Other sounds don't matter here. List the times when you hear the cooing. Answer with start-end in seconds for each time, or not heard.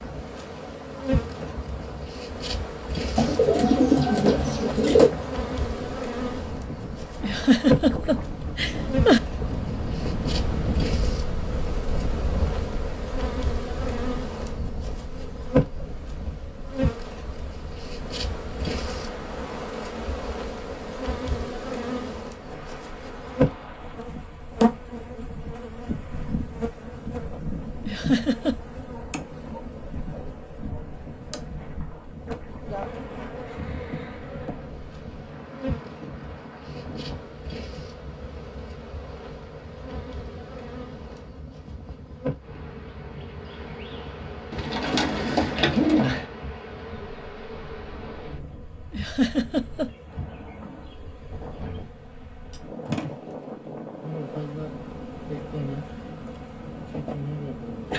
3.1-5.1, 44.5-46.2.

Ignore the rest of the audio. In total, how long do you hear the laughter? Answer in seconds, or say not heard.
4 s.